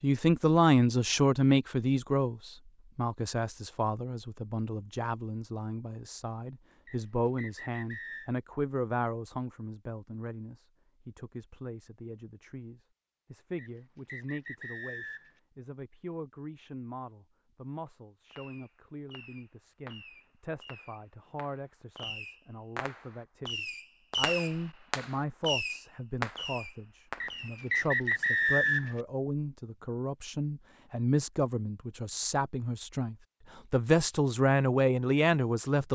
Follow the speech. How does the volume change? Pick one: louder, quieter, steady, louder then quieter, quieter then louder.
quieter then louder.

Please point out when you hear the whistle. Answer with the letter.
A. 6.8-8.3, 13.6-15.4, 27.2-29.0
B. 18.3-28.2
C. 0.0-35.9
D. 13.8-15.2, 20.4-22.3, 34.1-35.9
A.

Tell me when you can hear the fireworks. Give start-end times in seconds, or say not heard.
18.3-28.2.